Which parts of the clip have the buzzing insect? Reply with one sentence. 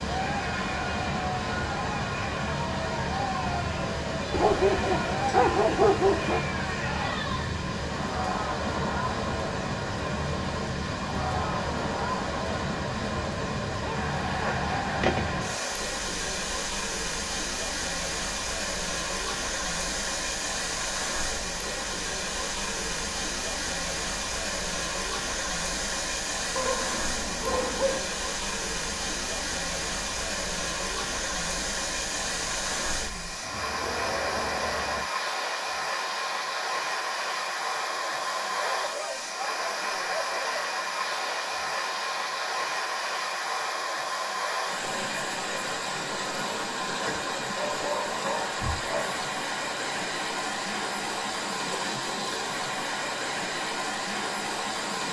You can't hear the buzzing insect here.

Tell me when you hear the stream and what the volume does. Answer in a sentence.
The stream can be heard from 0.0 to 55.0 s, at a steady volume.